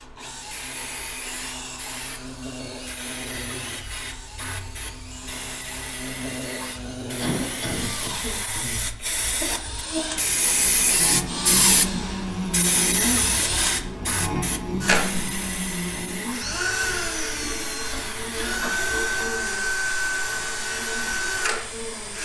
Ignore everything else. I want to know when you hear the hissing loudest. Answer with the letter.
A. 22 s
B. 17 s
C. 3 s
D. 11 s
D.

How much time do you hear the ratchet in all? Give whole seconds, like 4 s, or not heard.
not heard.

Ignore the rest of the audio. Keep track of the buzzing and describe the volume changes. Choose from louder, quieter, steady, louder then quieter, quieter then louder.
louder then quieter.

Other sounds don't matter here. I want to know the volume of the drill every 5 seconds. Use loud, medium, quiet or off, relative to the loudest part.
quiet, medium, loud, loud, loud.